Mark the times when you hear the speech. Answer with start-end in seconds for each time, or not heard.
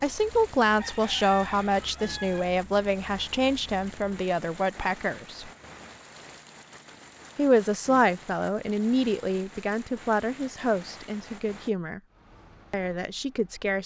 0.0-5.5, 7.3-12.0, 12.7-13.8.